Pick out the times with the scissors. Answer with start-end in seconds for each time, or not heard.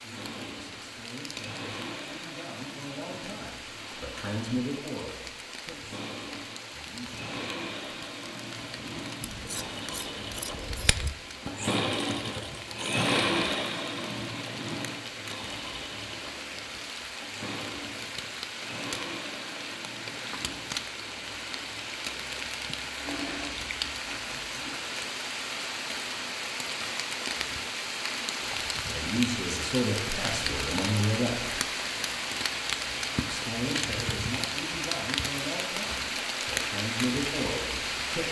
9.2-11.2.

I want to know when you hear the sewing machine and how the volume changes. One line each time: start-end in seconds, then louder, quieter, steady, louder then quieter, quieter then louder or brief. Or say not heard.
0.0-24.8 louder then quieter.